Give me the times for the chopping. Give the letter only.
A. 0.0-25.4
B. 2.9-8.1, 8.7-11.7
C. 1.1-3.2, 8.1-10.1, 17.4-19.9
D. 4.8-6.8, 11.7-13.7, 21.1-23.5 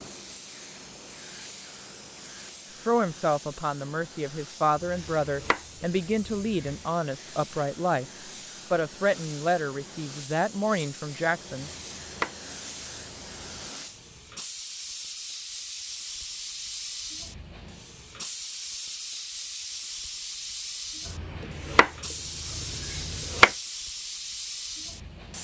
D.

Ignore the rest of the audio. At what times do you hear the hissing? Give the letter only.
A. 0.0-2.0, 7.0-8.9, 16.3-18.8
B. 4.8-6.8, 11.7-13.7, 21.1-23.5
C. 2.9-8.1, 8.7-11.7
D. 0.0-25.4
D.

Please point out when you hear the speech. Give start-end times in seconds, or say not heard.
2.9-8.1, 8.7-11.7.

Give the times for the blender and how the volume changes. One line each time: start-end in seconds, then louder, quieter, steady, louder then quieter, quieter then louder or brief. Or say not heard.
not heard.